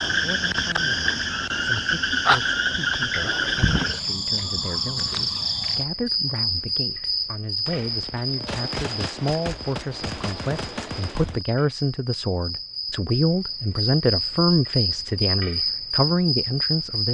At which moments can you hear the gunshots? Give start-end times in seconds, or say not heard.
7.7-11.4.